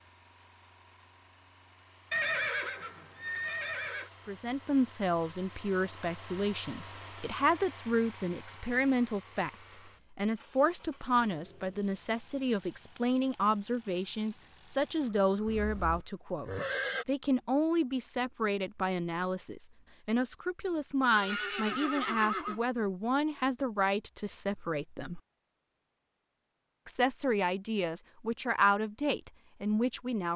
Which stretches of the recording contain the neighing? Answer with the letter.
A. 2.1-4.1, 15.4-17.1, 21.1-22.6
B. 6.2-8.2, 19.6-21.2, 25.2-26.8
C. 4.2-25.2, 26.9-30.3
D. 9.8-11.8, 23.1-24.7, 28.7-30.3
A.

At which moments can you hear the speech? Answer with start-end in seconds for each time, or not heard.
4.2-25.2, 26.9-30.3.